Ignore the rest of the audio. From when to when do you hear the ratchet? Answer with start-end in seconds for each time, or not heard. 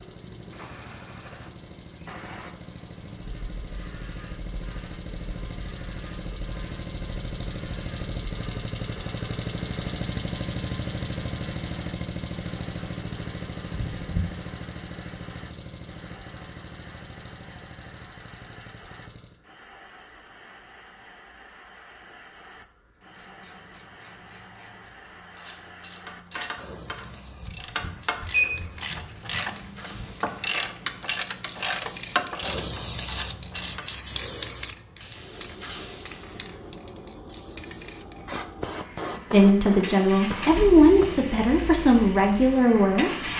22.9-33.9.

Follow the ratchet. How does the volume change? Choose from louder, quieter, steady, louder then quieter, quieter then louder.
louder.